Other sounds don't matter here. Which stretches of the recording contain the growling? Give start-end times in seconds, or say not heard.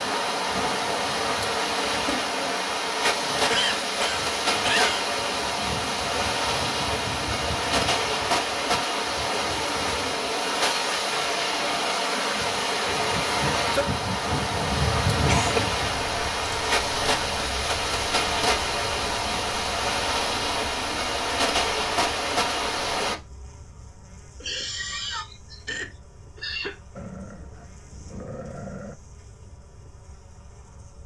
26.9-28.9.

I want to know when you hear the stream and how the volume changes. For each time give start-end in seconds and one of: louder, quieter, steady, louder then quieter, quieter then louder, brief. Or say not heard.
0.0-23.1 steady.